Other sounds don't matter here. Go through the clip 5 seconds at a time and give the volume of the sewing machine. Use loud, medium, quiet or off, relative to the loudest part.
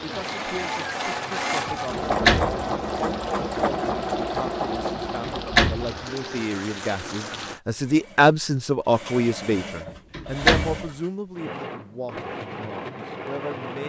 loud, medium, medium.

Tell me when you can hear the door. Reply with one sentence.
The door can be heard from 1.6 to 2.6 s, from 5.0 to 6.0 s and from 9.8 to 10.8 s.